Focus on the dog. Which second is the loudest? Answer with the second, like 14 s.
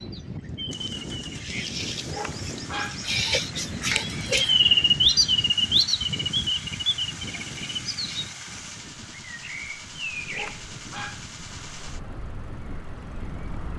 3 s.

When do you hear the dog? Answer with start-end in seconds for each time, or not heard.
2.0-3.0, 10.3-11.2.